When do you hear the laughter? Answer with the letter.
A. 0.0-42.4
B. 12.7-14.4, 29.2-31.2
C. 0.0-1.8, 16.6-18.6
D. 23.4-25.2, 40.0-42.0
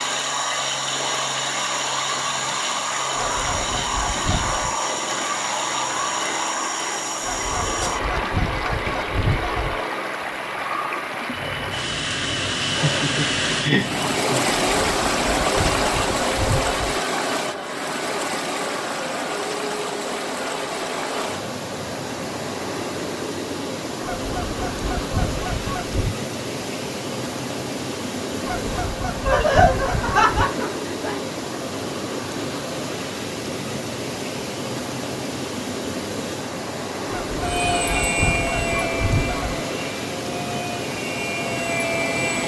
B.